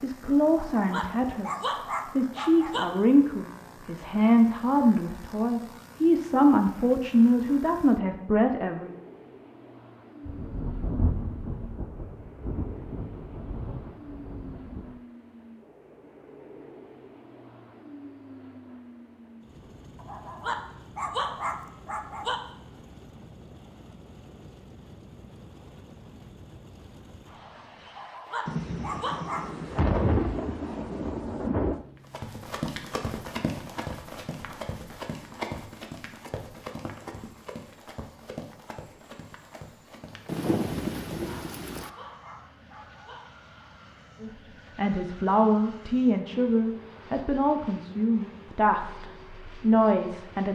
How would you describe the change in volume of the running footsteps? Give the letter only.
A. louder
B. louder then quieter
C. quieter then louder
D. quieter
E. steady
D.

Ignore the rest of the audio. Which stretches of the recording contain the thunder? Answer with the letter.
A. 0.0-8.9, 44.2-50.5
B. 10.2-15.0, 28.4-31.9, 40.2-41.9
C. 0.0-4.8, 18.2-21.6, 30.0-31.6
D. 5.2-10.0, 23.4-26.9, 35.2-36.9
B.